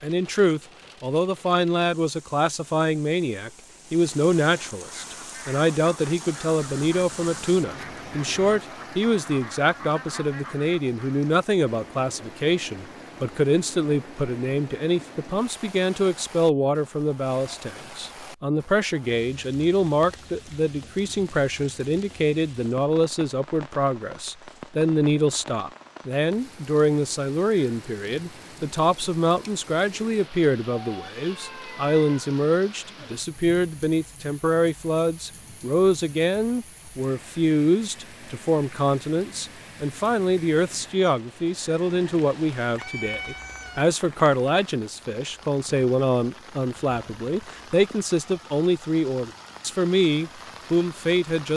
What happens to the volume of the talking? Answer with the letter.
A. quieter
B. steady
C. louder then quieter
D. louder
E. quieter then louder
B.